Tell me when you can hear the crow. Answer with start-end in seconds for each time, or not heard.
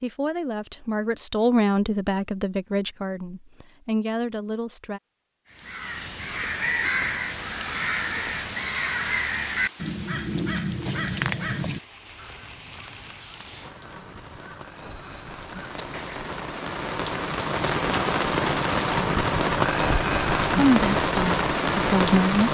5.5-16.2.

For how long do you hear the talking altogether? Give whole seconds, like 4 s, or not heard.
7 s.